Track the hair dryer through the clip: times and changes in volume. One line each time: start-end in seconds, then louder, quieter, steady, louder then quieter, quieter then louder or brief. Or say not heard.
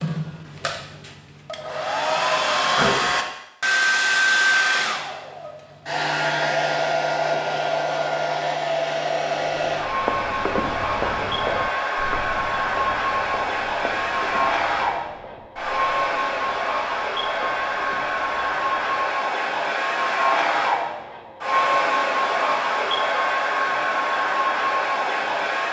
0.0-25.6 steady.